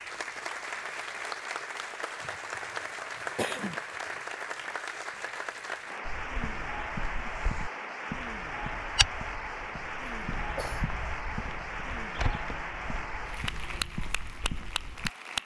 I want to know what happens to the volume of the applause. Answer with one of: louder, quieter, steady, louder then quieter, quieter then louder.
steady.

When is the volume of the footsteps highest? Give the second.
9 s.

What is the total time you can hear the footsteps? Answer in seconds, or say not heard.
9 s.